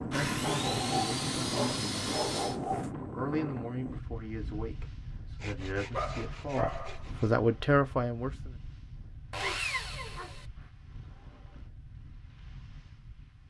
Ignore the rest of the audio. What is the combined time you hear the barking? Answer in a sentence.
The barking can be heard for 5 seconds in total.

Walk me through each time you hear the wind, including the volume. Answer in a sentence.
You can hear the wind from 0.0 to 13.4 s, getting quieter.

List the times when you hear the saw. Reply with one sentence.
You can hear the saw from 0.1 to 2.6 s, from 5.4 to 7.3 s and from 9.3 to 10.4 s.